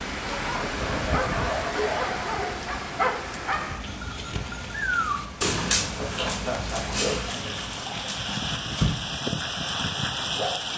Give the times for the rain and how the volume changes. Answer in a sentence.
The rain can be heard from 0.0 to 10.7 s, getting quieter then louder.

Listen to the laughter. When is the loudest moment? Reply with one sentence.
The volume of the laughter peaks at 7 seconds.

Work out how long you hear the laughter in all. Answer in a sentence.
The laughter can be heard for 2 seconds in total.